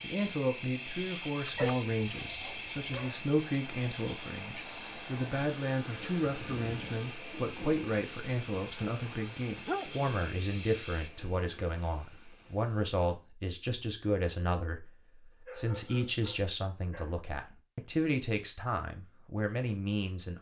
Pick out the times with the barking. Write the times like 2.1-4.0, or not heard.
1.4-3.1, 9.0-10.1, 15.4-17.2.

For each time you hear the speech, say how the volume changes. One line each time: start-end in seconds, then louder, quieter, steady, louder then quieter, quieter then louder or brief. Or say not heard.
0.0-20.3 steady.